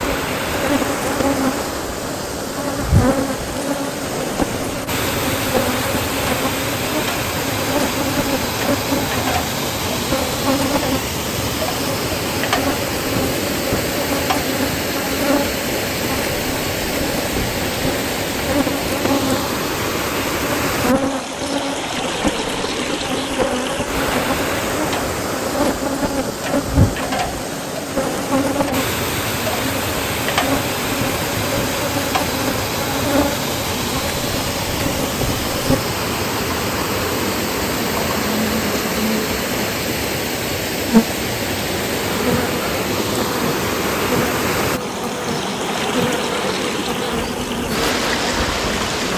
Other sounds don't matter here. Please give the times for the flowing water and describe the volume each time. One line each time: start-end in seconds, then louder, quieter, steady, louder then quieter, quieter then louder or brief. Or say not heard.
0.0-49.1 steady.